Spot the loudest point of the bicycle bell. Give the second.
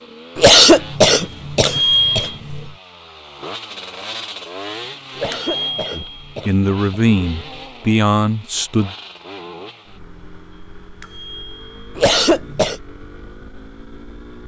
2 s.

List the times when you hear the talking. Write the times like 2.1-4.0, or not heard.
5.9-8.9.